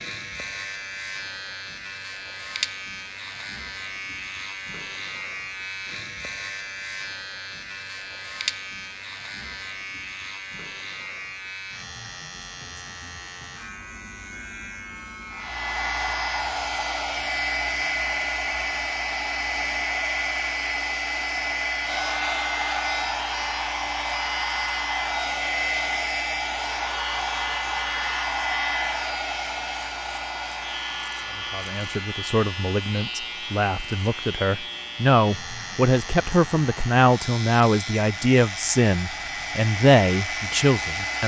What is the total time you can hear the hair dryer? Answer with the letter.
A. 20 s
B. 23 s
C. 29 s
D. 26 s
D.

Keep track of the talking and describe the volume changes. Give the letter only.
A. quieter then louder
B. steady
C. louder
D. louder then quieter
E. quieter
C.